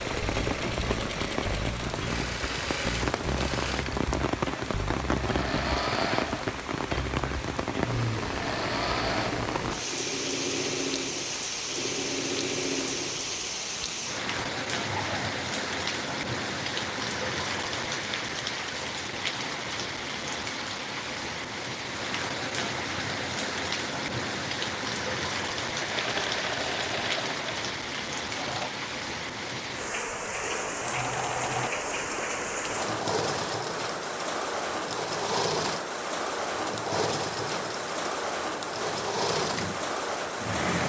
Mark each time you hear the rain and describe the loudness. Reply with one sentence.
The rain can be heard from 0.0 to 40.8 s, at a steady volume.